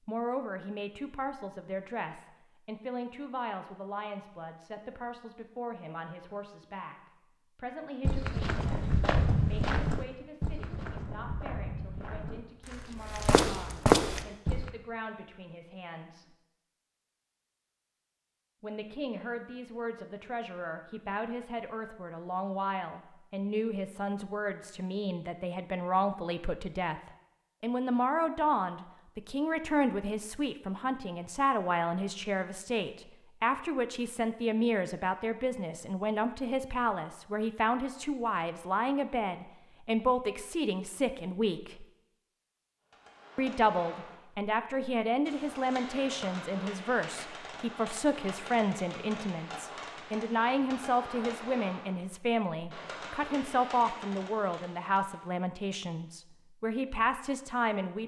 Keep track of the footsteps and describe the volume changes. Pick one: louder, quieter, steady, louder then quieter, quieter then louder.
quieter then louder.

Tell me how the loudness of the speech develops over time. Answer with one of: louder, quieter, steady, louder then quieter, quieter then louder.
louder.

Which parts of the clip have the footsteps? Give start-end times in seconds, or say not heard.
8.1-14.7.